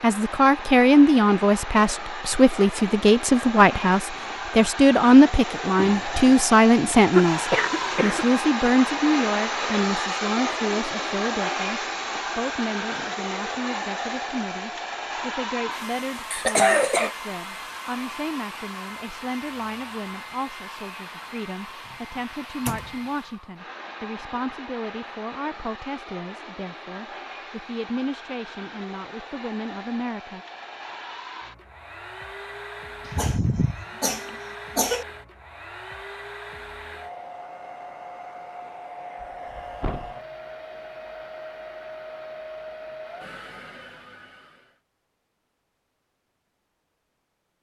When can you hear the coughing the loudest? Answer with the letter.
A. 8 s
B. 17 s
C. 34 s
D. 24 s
B.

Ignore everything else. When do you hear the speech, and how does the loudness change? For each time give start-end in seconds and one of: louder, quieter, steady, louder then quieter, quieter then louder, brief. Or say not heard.
0.0-30.4 quieter.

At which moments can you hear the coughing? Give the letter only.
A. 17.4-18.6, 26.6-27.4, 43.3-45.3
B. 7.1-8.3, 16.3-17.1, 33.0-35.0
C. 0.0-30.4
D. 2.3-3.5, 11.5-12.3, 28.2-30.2
B.